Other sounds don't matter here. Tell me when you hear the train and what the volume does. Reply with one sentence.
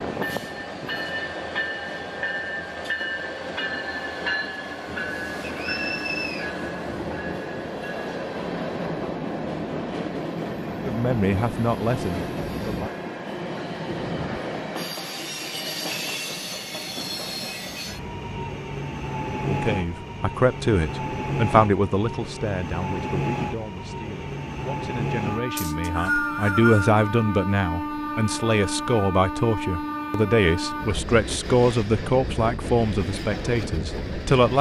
You can hear the train from 0.0 to 34.5 s, at a steady volume.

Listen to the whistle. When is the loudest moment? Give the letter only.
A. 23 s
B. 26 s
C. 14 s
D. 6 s
B.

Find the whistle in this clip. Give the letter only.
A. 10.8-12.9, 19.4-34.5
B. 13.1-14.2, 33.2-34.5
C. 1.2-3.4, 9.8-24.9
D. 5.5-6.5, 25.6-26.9
D.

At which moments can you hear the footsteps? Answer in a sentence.
You can't hear the footsteps here.